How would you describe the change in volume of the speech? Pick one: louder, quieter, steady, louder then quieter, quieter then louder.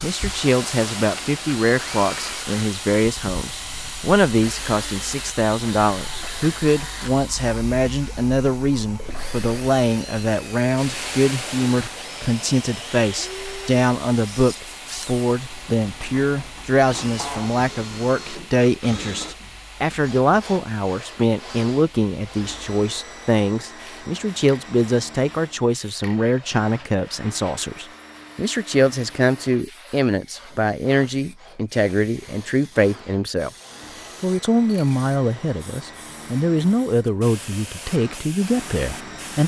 steady.